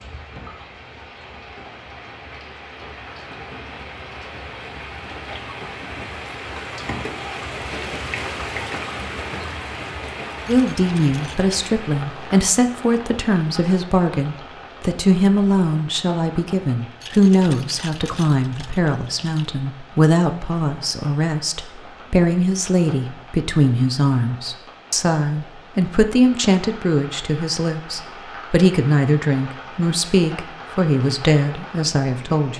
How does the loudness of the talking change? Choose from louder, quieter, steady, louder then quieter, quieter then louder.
steady.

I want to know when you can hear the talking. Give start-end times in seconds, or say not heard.
10.4-32.5.